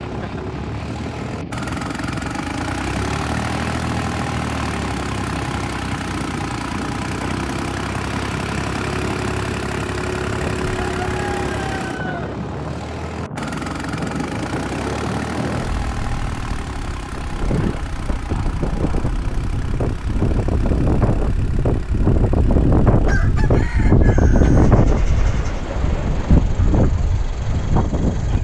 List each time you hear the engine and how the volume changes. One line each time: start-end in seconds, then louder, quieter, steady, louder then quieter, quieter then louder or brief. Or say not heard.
0.0-28.3 quieter.